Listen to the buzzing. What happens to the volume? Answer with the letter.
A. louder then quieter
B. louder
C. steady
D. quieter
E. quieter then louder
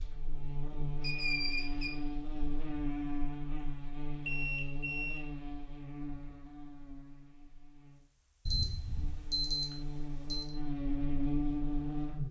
E.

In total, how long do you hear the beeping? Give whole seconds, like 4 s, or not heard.
4 s.